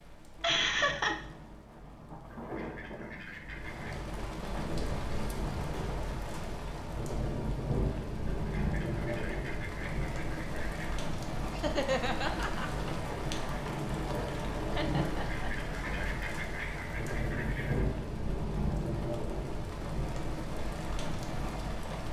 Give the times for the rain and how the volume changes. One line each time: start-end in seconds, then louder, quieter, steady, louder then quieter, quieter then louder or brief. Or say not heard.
0.0-22.0 louder.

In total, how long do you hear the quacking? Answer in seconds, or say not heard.
7 s.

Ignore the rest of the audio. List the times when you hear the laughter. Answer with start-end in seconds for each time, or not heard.
0.4-1.1, 11.6-12.7, 14.7-15.5.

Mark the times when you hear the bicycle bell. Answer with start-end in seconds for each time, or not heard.
not heard.